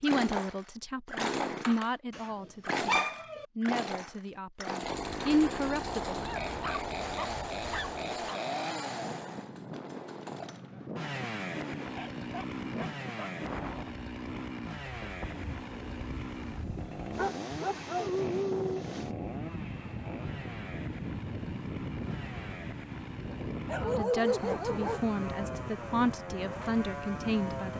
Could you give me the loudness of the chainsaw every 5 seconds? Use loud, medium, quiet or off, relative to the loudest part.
loud, loud, medium, medium, medium, medium.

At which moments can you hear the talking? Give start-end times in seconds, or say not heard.
0.0-6.2, 23.8-27.7.